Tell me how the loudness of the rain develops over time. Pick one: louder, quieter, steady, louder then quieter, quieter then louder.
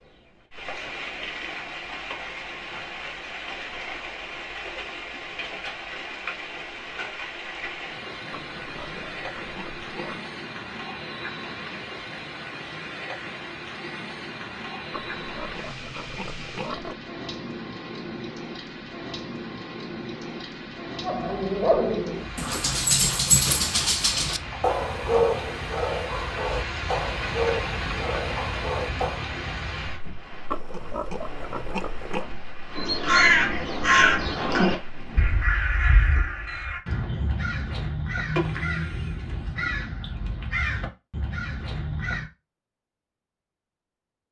steady.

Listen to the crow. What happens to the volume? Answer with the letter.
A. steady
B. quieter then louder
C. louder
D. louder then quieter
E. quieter
E.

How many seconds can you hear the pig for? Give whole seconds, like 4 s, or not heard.
6 s.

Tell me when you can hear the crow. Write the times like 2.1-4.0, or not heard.
32.7-42.2.